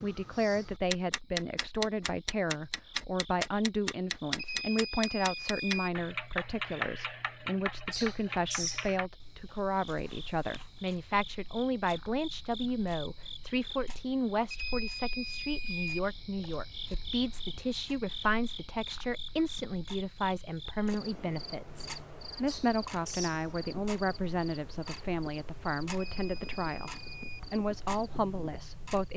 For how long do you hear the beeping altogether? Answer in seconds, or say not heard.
4 s.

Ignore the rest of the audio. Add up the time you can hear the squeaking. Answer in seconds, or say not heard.
2 s.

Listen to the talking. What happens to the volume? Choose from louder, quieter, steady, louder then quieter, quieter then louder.
steady.